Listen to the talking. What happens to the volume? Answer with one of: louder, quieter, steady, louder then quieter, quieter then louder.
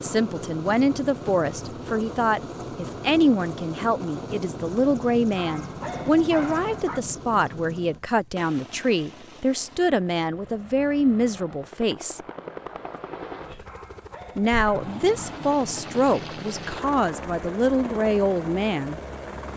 steady.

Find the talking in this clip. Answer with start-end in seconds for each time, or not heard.
0.0-12.2, 14.3-18.9.